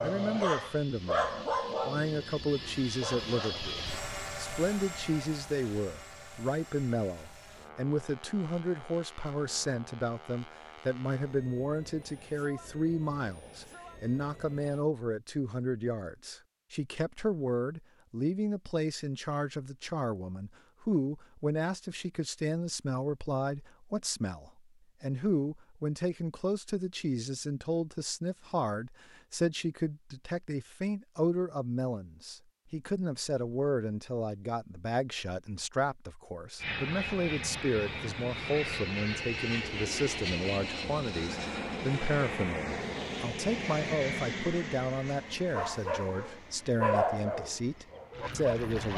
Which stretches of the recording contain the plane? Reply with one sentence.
The plane can be heard from 0.0 to 14.8 s and from 36.5 to 48.9 s.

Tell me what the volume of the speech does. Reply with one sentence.
The volume of the speech stays about the same.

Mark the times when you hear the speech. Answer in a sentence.
You can hear the speech from 0.0 to 48.9 s.